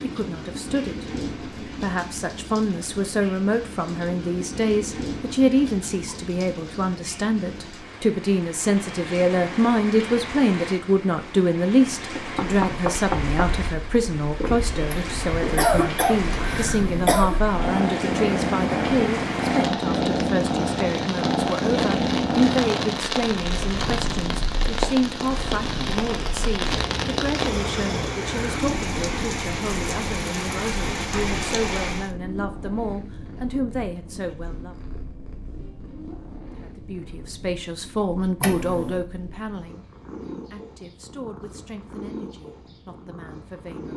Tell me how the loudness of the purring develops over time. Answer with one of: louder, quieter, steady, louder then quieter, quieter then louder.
quieter.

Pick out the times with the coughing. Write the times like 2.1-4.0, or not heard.
14.8-17.4, 38.4-39.0.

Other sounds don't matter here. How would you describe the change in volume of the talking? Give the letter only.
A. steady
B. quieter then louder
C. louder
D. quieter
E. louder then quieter
D.